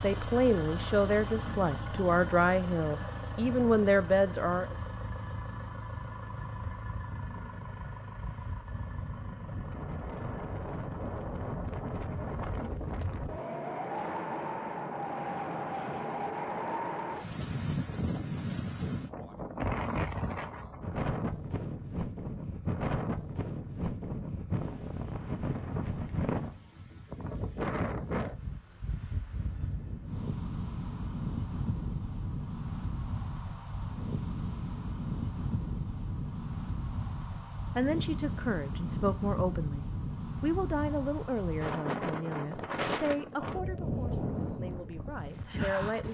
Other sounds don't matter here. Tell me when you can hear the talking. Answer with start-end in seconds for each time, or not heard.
0.0-4.8, 37.8-46.0.